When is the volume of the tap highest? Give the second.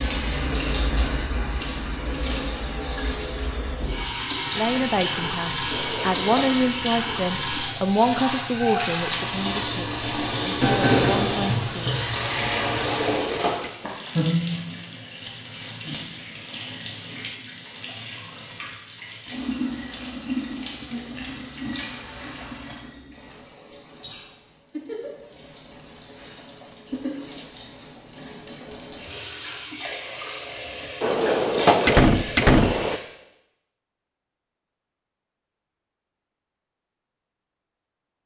11 s.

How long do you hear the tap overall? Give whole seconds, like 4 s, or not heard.
33 s.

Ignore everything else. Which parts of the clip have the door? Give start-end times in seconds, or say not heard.
5.7-6.5, 12.8-13.7, 31.0-33.0.